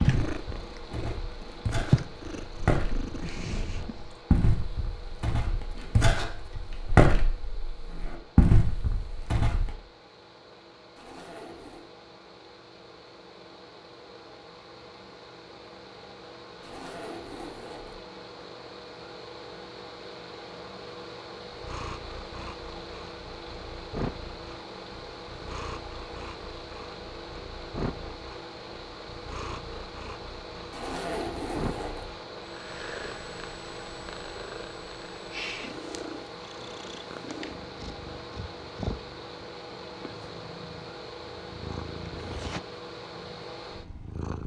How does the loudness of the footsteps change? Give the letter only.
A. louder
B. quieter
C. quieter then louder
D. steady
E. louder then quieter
A.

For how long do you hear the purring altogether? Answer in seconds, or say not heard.
27 s.